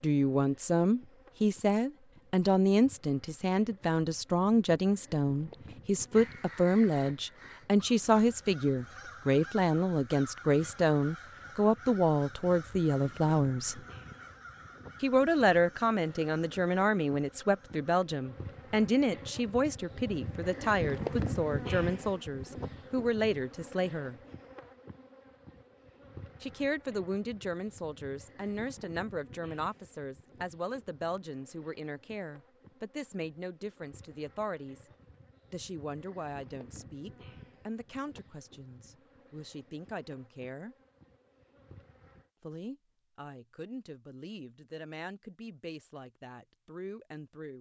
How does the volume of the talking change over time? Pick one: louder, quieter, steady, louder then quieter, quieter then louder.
quieter.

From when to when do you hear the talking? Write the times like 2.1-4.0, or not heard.
0.0-13.8, 15.0-24.1, 26.4-34.9, 35.5-40.8, 42.4-47.5.